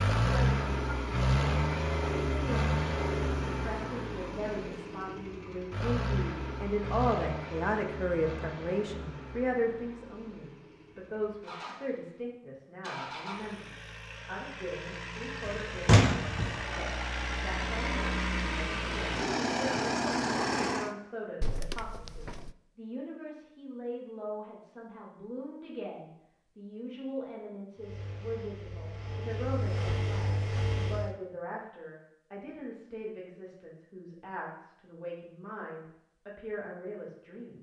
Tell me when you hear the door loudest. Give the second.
16 s.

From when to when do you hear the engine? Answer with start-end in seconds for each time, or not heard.
0.0-20.9, 27.8-31.1.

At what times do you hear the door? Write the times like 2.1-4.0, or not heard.
15.4-16.6, 21.4-22.6.